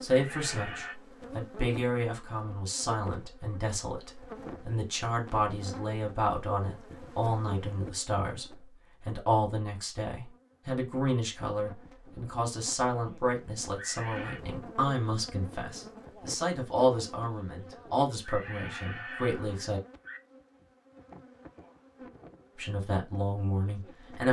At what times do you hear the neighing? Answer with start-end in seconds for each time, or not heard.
0.1-0.9, 13.8-14.4, 18.2-20.2.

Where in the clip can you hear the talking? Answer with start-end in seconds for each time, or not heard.
0.0-19.8, 22.6-24.2.